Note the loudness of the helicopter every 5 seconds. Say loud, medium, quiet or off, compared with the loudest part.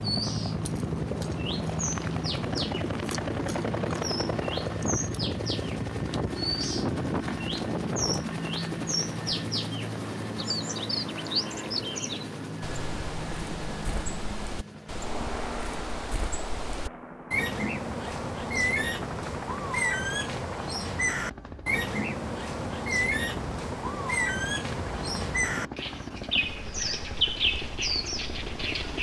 loud, loud, medium, medium, medium, medium.